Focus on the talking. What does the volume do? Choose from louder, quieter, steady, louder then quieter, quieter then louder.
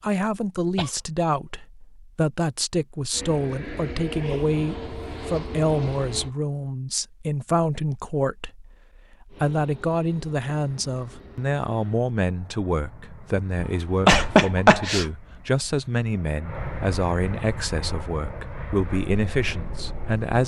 steady.